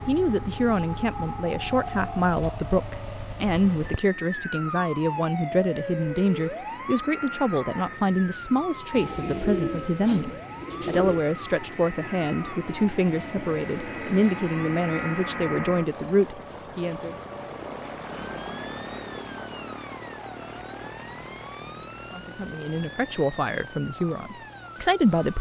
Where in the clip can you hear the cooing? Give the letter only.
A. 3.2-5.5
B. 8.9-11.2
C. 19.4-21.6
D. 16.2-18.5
B.